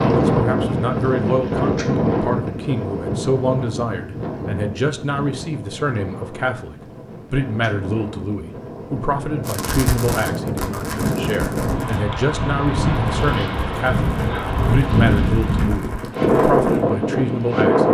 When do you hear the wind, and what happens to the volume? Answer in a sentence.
You can hear the wind from 0.0 to 17.9 s, getting quieter then louder.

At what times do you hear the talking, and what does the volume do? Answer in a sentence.
You can hear the talking from 0.0 to 17.9 s, at a steady volume.